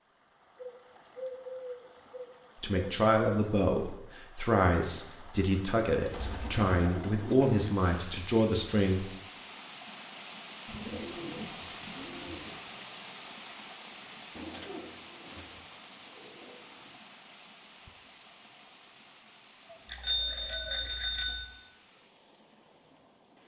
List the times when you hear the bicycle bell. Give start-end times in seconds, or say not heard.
19.9-21.4.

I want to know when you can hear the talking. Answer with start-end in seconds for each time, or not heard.
2.6-9.1.